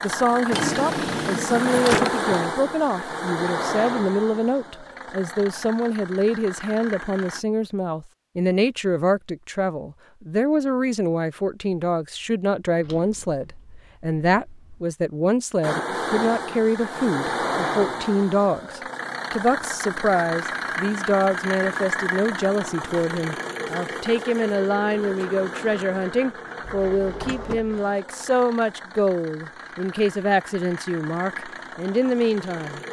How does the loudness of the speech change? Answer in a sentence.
The loudness of the speech stays about the same.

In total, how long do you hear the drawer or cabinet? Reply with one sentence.
You can hear the drawer or cabinet for 5 seconds altogether.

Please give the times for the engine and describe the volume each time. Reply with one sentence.
The engine can be heard from 0.0 to 7.5 s, getting quieter; and from 15.6 to 32.8 s, getting quieter.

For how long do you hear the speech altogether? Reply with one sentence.
The speech can be heard for 33 seconds in total.